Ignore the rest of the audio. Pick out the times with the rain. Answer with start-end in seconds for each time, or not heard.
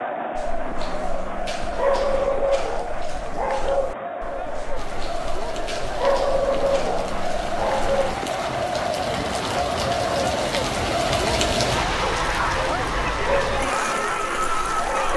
4.8-15.1.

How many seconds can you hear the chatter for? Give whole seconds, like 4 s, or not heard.
15 s.